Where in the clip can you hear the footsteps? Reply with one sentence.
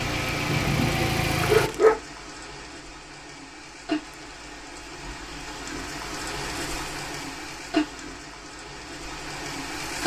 You can't hear the footsteps here.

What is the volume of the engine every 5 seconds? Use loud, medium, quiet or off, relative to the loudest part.
loud, off.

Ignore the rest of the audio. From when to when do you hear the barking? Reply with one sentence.
The barking can be heard from 0.5 to 1.9 s.